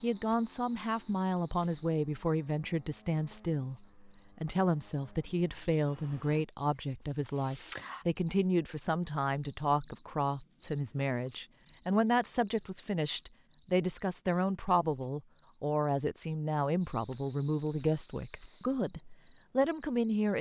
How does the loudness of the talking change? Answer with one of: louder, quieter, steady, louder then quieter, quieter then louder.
steady.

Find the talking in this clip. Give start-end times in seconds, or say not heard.
0.0-20.3.